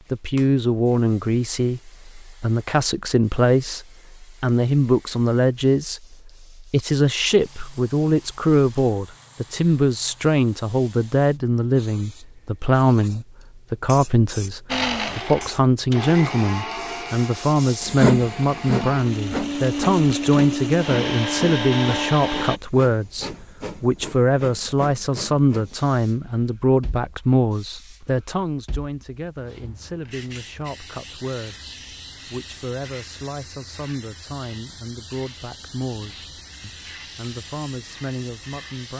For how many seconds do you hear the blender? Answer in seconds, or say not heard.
8 s.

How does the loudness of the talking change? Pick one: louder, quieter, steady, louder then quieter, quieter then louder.
quieter.